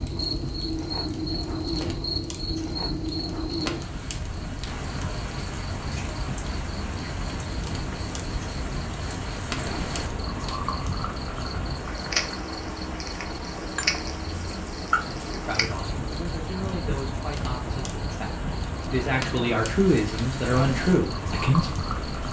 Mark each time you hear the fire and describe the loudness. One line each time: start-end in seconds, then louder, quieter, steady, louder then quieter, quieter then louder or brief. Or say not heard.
0.0-22.2 steady.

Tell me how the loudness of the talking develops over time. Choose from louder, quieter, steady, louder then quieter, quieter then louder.
louder.